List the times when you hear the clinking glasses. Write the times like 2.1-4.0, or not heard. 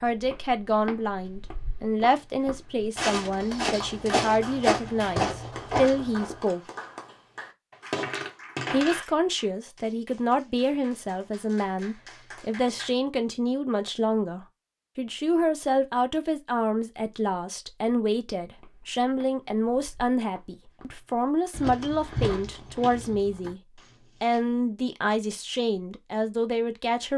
7.7-9.1.